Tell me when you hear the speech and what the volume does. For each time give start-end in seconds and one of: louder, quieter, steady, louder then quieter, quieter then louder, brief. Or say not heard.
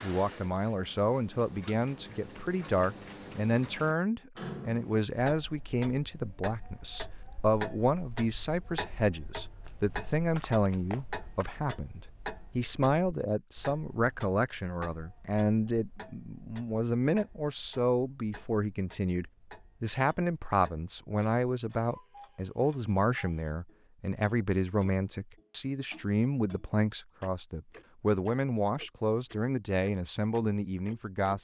0.0-31.3 steady.